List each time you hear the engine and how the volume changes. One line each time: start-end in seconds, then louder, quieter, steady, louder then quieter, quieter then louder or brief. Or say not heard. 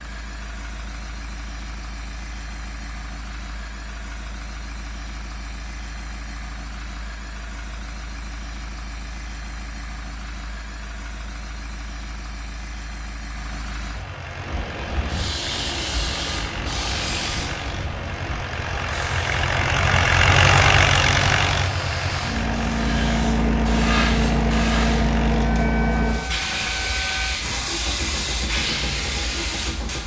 0.0-30.0 louder then quieter.